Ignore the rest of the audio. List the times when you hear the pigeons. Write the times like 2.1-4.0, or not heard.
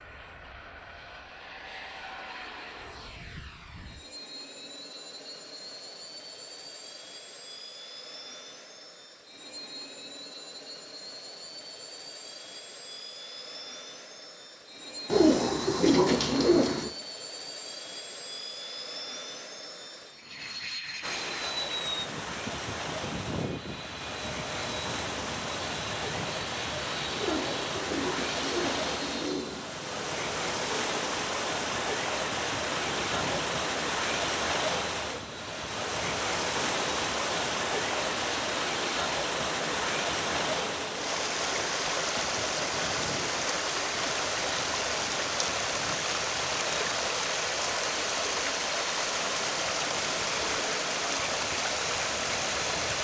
15.1-16.9, 27.1-29.8.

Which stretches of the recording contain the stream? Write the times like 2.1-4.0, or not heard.
21.0-52.9.